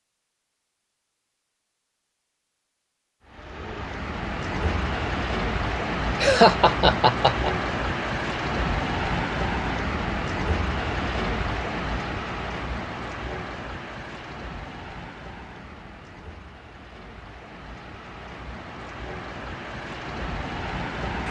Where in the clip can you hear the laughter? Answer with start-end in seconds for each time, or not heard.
6.2-7.5.